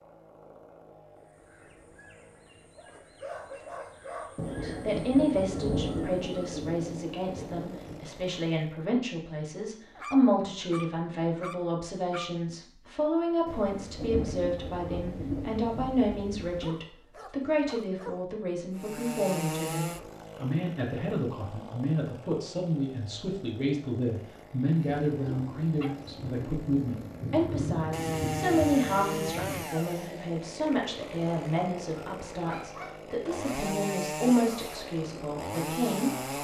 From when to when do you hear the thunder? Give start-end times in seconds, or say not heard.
4.3-8.1, 13.4-16.6, 24.9-29.7.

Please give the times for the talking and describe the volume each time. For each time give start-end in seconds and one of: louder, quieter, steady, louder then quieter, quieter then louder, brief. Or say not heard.
4.6-36.3 steady.